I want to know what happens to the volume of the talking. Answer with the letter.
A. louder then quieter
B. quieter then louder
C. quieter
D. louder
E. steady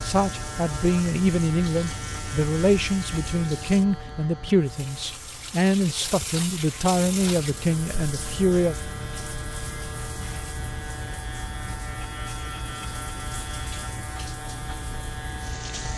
E.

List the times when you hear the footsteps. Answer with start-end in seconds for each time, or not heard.
not heard.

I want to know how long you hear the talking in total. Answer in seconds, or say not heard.
9 s.